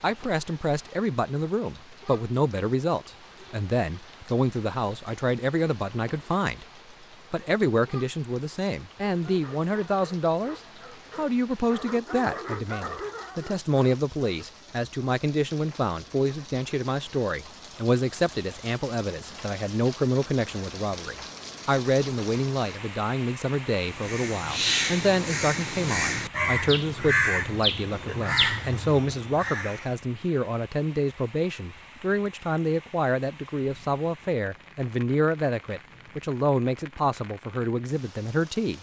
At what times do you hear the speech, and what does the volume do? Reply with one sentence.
The speech can be heard from 0.0 to 6.7 s, at a steady volume; and from 7.3 to 38.7 s, at a steady volume.